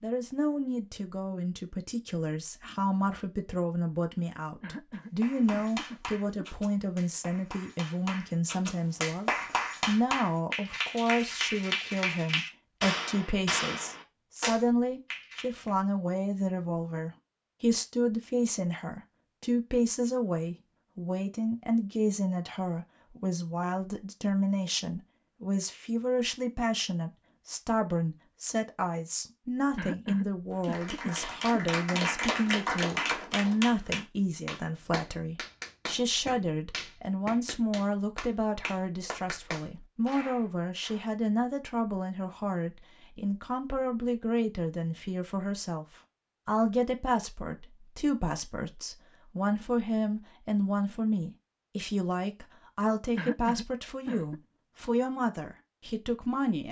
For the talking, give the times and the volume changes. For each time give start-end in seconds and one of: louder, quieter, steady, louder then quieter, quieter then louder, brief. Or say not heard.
0.0-45.9 steady
46.5-56.6 steady.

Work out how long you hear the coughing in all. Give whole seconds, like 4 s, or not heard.
5 s.